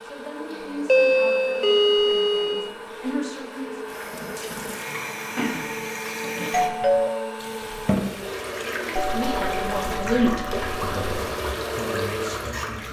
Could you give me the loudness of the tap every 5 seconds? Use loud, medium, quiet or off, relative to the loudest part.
medium, loud, loud.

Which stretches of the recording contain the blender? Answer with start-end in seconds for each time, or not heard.
0.0-12.6.